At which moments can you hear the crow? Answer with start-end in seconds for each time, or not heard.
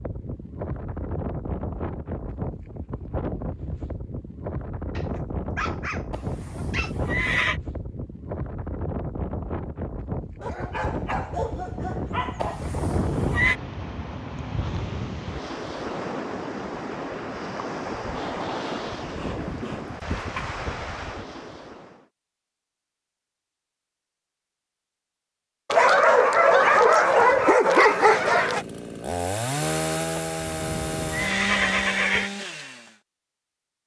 not heard.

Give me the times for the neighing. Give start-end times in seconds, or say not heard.
6.1-7.6, 12.4-13.6, 30.3-32.3.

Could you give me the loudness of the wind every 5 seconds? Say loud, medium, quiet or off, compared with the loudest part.
loud, loud, loud, loud, loud, off, off.